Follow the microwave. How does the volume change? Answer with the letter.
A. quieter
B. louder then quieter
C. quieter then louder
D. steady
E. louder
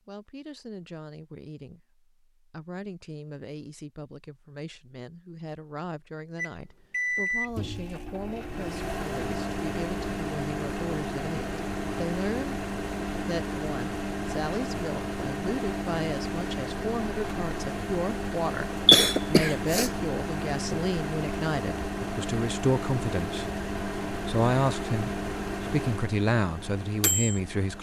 D.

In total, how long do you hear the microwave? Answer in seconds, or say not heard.
21 s.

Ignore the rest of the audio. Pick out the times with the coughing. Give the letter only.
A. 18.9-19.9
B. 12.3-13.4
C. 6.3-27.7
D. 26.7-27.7
A.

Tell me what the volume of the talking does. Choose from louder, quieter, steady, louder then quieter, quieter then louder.
louder.